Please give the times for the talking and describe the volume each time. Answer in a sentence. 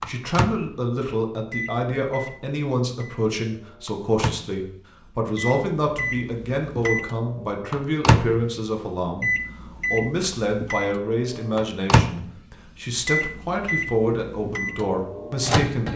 The talking can be heard from 0.1 to 15.9 s, at a steady volume.